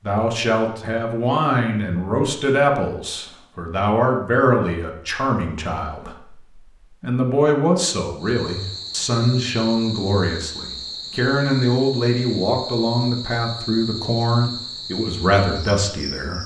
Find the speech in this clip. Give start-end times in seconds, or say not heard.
0.0-16.4.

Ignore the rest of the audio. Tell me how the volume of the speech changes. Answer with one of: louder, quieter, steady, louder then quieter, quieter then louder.
steady.